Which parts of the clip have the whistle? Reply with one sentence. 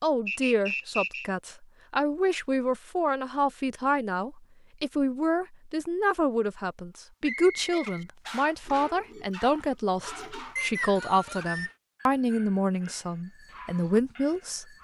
The whistle can be heard from 0.2 to 1.2 s, from 7.2 to 8.1 s and from 10.6 to 11.8 s.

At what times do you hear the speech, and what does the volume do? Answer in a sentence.
You can hear the speech from 0.0 to 14.7 s, at a steady volume.